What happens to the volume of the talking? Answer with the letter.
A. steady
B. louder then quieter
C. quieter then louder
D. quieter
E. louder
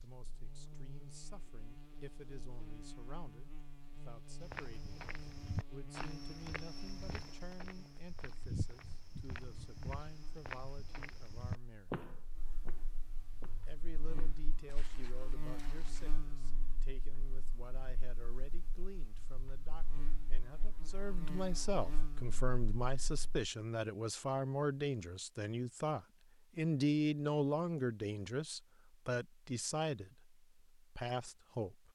E.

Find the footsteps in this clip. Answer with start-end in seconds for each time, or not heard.
4.4-16.1.